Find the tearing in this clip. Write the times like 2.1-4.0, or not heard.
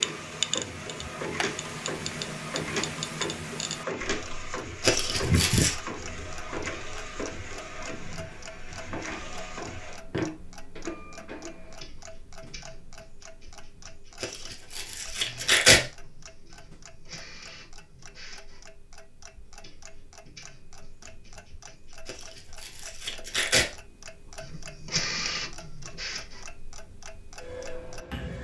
4.8-5.8, 14.2-15.8, 22.1-23.7.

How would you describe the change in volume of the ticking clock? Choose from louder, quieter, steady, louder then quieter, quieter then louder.
quieter then louder.